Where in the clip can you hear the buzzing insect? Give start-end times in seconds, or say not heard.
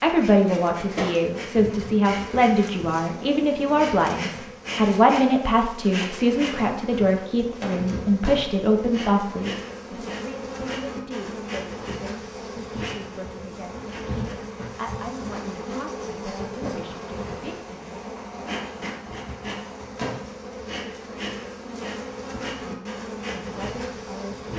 0.0-24.5.